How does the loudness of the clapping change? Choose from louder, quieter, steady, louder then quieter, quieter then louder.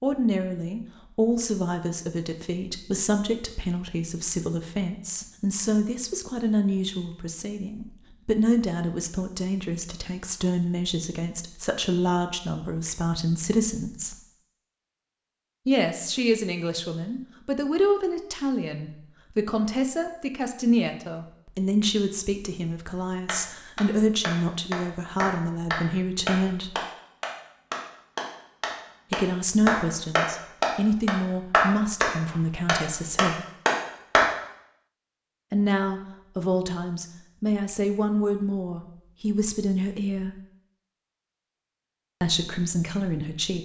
louder.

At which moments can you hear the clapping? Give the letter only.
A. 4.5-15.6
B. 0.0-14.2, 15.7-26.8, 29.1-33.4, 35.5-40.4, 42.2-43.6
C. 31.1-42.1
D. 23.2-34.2
D.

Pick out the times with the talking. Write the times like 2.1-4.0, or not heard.
0.0-14.2, 15.7-26.8, 29.1-33.4, 35.5-40.4, 42.2-43.6.